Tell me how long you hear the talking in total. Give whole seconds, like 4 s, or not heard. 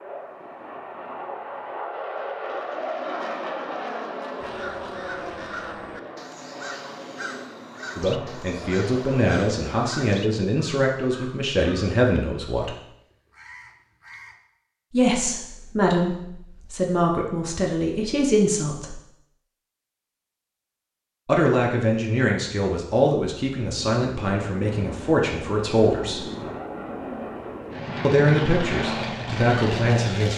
16 s.